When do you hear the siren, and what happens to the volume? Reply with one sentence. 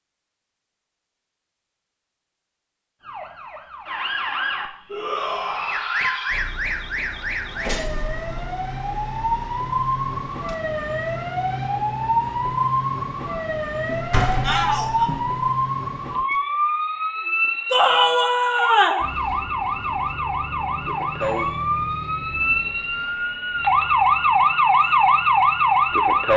You can hear the siren from 3.0 to 26.3 s, getting louder.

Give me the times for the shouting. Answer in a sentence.
You can hear the shouting from 4.9 to 6.5 s, from 14.4 to 15.1 s and from 17.7 to 19.1 s.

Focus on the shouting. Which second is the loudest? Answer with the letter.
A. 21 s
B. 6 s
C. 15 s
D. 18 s
D.